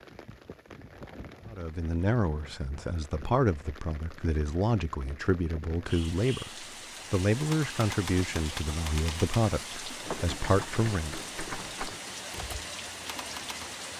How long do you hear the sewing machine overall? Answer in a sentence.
The sewing machine can't be heard in this clip.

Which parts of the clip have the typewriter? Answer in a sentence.
You can hear the typewriter from 7.3 to 13.8 s.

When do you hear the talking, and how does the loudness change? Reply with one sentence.
The talking can be heard from 1.5 to 11.2 s, at a steady volume.